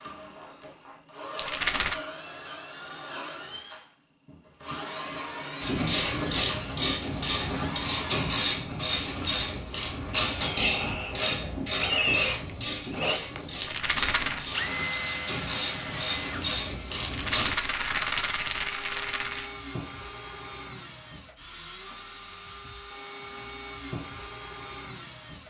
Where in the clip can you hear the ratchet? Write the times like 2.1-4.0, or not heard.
5.6-17.6.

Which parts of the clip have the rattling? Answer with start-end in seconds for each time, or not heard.
1.4-2.0, 13.6-14.4, 17.0-19.5.